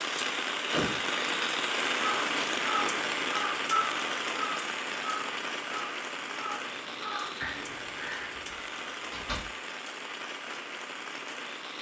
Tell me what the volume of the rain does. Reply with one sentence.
The volume of the rain goes down.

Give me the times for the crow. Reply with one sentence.
The crow can be heard from 1.9 to 8.4 s.